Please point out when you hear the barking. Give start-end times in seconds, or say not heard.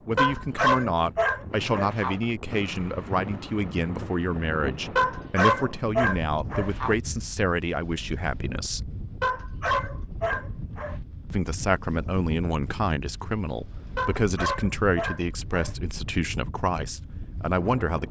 0.1-2.1, 5.0-7.0, 9.2-10.9, 13.9-15.8.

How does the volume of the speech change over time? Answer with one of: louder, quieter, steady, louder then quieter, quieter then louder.
steady.